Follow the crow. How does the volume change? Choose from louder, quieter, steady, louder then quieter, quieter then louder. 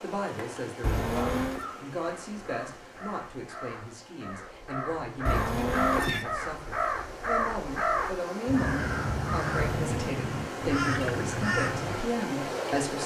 louder.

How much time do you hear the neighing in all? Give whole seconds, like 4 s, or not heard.
2 s.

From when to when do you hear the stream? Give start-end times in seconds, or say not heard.
0.0-13.0.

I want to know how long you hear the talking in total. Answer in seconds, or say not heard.
13 s.